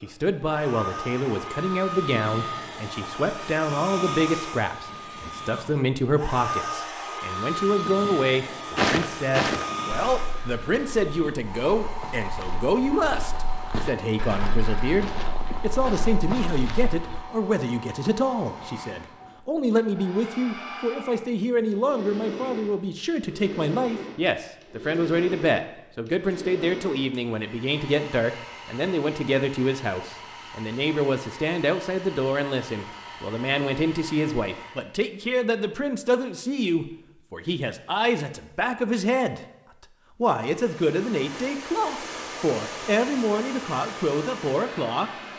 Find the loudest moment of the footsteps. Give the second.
9 s.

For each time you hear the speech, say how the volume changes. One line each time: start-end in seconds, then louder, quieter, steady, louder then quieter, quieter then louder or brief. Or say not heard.
0.0-39.4 steady
40.2-45.1 steady.